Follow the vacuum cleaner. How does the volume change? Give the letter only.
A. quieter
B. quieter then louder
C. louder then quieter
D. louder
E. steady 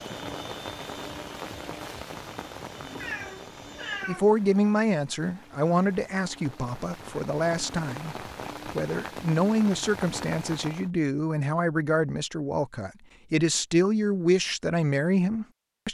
A.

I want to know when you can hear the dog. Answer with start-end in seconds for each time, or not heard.
not heard.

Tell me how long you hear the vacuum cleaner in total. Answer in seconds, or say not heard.
4 s.